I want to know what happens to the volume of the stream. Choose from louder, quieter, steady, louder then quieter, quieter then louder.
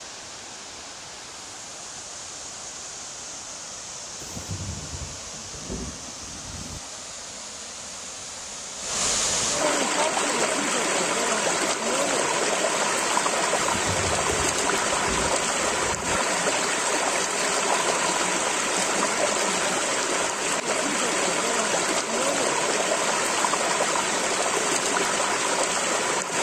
louder.